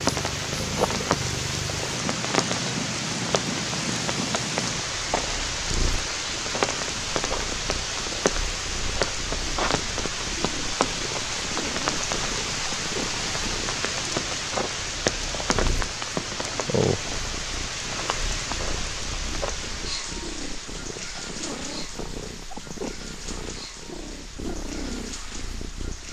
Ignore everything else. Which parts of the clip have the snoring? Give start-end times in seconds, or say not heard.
not heard.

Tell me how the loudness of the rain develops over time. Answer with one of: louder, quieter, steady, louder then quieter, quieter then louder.
quieter.